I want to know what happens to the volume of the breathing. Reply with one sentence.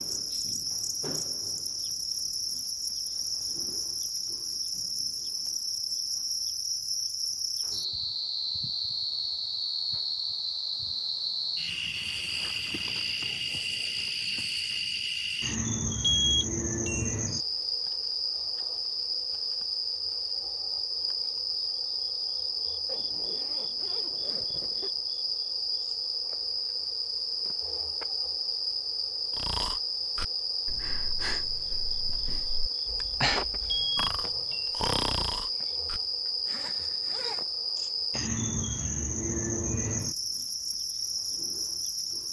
The volume of the breathing goes up.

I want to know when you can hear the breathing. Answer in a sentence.
The breathing can be heard from 29.3 to 36.0 s.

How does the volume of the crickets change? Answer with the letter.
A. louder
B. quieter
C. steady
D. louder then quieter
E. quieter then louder
C.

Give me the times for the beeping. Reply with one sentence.
You can hear the beeping from 16.2 to 17.1 s and from 33.6 to 34.7 s.